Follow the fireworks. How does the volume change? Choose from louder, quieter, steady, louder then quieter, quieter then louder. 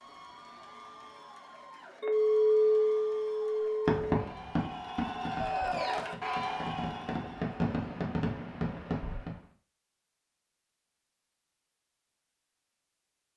quieter then louder.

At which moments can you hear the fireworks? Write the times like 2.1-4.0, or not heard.
3.9-9.4.